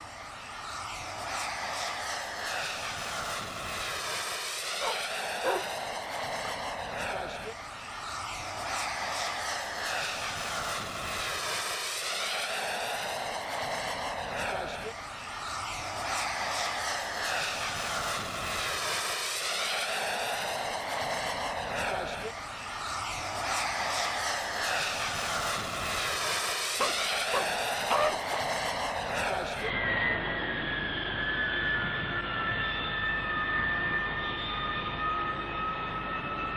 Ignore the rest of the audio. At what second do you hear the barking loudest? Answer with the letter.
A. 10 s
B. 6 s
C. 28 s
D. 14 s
C.